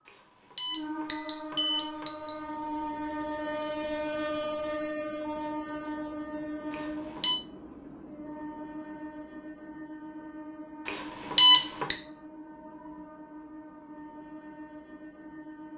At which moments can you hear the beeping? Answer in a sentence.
You can hear the beeping from 0.1 to 2.4 s, from 6.7 to 7.4 s and from 10.8 to 11.9 s.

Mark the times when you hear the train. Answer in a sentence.
You can hear the train from 0.0 to 15.7 s.